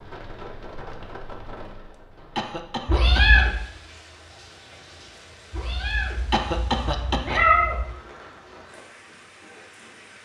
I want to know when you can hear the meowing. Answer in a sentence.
You can hear the meowing from 2.9 to 3.5 s and from 5.5 to 7.8 s.